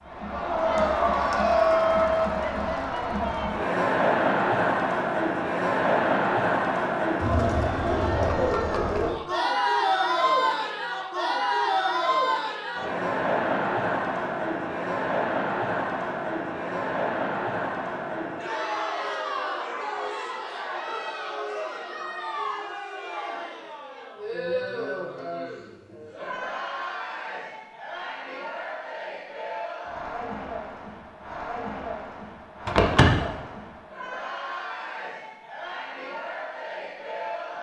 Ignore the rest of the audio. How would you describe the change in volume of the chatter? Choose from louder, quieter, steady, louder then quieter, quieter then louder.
quieter.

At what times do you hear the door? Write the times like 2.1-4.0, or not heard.
32.6-33.2.